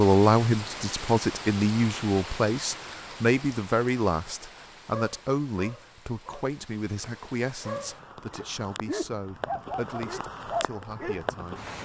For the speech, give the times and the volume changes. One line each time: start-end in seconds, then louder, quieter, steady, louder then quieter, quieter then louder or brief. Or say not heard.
0.0-11.7 quieter.